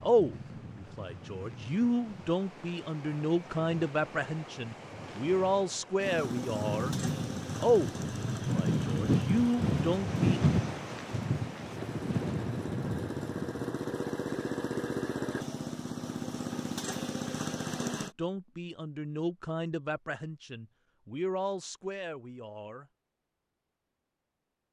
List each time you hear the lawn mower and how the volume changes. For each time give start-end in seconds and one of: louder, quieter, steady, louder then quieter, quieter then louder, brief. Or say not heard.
6.0-18.1 quieter then louder.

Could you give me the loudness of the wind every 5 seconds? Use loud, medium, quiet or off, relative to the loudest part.
quiet, loud, loud, off, off.